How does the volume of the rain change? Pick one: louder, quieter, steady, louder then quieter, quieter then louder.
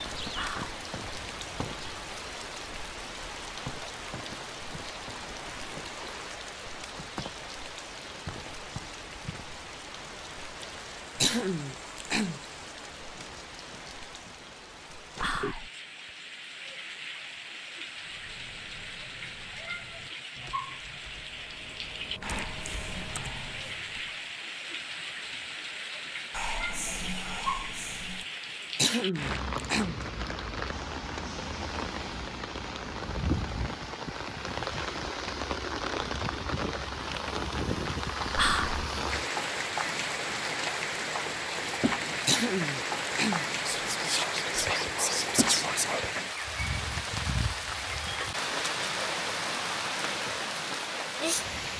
louder.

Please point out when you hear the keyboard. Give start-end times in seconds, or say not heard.
18.0-24.2.